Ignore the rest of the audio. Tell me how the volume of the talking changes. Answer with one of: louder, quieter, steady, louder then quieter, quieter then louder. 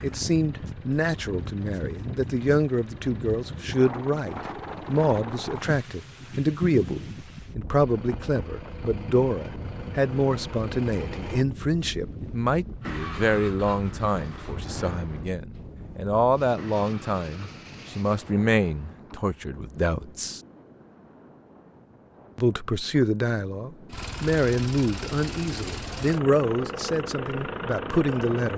steady.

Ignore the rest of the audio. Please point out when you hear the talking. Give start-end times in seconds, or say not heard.
0.0-20.4, 22.4-28.5.